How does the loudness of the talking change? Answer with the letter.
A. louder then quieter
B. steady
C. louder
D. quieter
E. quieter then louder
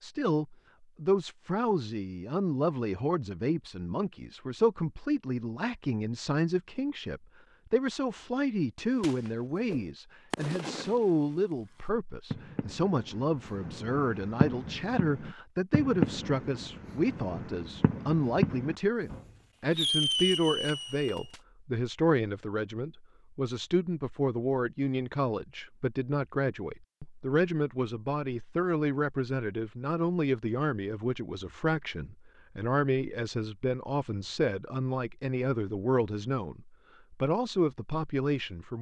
B.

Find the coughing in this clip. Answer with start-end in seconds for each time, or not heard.
not heard.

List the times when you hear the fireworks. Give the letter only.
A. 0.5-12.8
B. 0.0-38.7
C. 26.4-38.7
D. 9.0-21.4
D.